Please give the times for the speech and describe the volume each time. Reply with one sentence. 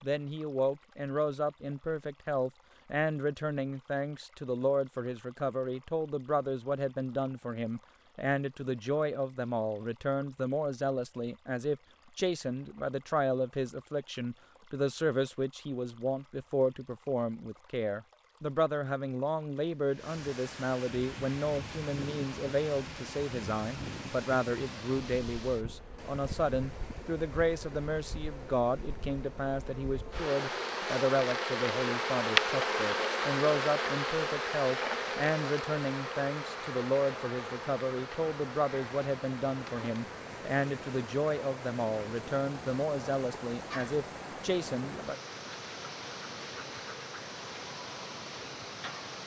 The speech can be heard from 0.0 to 45.1 s, at a steady volume.